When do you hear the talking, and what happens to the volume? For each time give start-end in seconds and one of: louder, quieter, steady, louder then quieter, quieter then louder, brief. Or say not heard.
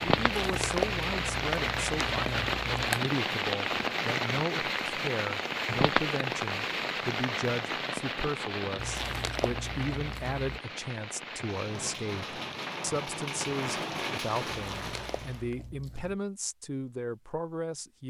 0.0-18.0 steady.